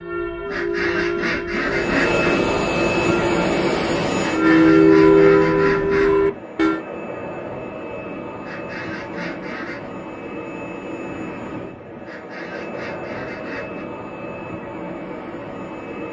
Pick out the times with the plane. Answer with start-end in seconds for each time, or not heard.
1.6-16.0.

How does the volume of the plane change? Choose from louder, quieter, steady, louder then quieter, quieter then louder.
quieter.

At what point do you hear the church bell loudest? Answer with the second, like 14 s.
5 s.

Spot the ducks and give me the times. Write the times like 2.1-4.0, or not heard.
0.5-2.4, 4.2-6.2, 8.4-9.9, 12.0-13.8.